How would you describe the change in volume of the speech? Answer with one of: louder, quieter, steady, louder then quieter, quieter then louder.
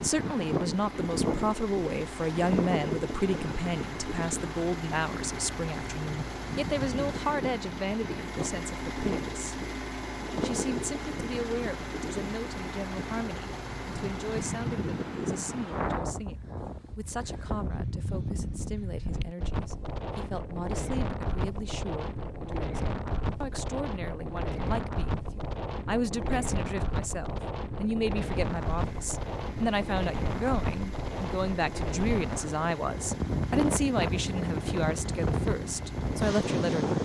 quieter then louder.